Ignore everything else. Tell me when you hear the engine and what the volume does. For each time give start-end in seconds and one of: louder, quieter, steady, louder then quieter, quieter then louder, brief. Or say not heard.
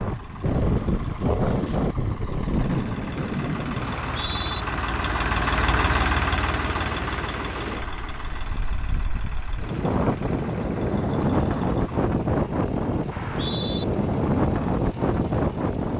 0.0-15.9 louder then quieter.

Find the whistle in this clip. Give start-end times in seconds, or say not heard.
3.9-4.7, 13.1-13.8.